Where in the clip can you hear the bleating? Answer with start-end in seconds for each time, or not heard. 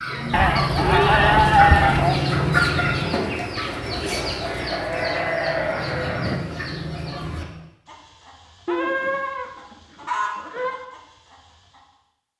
0.3-2.2, 4.4-6.4, 8.7-10.8.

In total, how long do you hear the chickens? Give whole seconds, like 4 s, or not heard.
12 s.